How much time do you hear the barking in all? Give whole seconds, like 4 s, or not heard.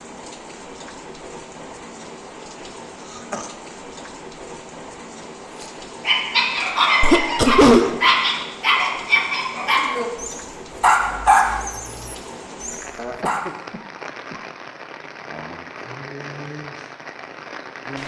8 s.